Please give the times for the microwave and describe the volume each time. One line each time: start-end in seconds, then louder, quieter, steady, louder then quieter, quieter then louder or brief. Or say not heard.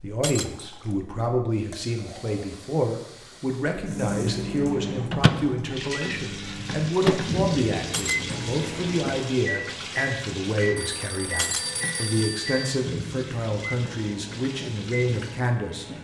3.8-15.9 quieter.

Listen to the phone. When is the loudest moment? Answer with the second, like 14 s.
12 s.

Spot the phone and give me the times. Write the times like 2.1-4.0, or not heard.
10.8-12.8.